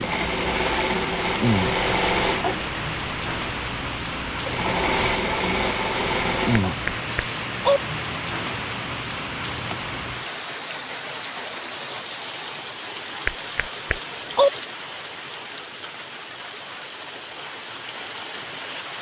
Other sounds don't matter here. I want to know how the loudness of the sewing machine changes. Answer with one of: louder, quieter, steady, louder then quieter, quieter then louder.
quieter then louder.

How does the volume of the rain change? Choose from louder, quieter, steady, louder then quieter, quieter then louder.
quieter.